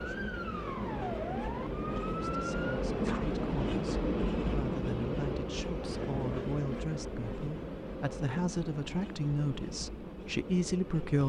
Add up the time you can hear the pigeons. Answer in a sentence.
You can't hear the pigeons here.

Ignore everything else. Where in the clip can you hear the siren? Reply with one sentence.
You can hear the siren from 0.0 to 2.8 s.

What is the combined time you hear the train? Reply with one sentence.
You can hear the train for 11 seconds altogether.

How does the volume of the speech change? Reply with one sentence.
The volume of the speech goes up.